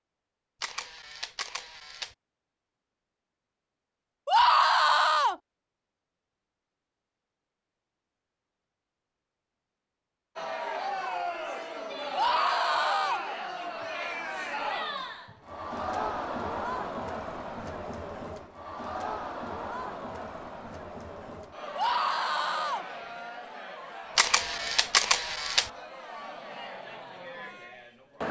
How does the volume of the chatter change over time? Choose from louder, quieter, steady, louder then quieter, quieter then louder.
quieter.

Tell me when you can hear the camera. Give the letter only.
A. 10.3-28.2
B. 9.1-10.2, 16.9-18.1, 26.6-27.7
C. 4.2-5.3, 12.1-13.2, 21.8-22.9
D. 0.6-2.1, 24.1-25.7
D.